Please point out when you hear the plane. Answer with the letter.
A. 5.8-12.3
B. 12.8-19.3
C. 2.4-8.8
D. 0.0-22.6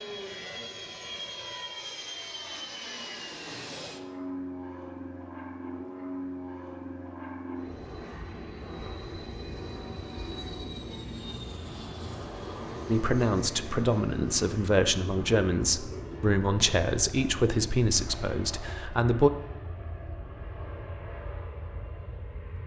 D.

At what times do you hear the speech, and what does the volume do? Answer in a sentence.
You can hear the speech from 12.8 to 19.3 s, at a steady volume.